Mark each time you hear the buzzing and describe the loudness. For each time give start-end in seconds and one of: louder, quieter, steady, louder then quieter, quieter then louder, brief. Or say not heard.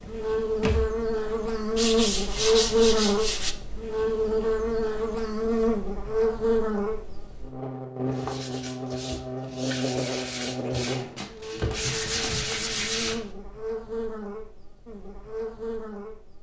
0.0-16.3 quieter.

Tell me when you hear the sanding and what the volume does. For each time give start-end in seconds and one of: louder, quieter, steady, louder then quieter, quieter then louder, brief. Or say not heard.
1.8-3.5 brief
8.1-13.2 louder.